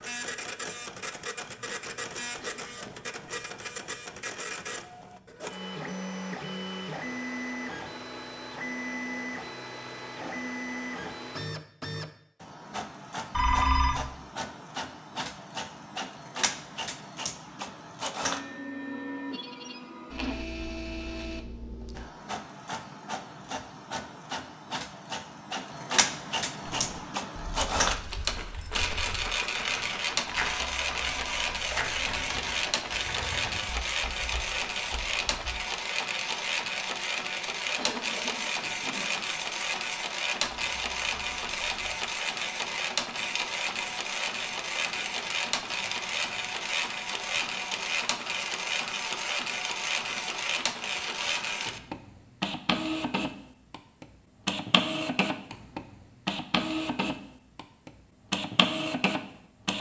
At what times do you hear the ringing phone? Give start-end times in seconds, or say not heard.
13.3-14.0, 30.4-32.3, 40.6-42.1.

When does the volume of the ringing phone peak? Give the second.
14 s.